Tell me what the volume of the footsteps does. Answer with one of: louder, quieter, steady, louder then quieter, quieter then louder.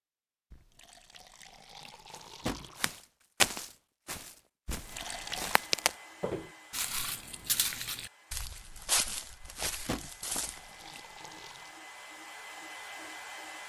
quieter.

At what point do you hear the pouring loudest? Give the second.
5 s.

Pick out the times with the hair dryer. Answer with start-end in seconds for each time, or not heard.
4.8-13.6.